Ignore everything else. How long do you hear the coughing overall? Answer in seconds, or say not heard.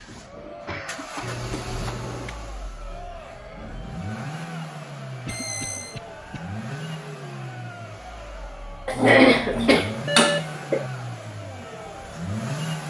5 s.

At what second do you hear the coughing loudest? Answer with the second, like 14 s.
9 s.